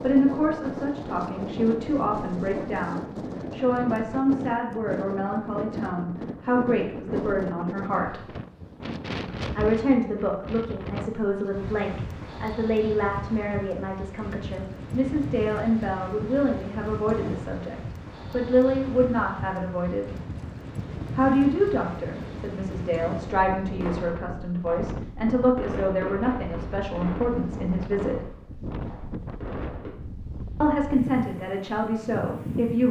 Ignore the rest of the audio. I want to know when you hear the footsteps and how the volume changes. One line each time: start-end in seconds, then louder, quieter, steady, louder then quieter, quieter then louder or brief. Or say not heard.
not heard.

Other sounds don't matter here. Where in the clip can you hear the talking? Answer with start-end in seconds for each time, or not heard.
0.0-8.2, 9.6-20.1, 21.1-28.1, 30.6-32.8.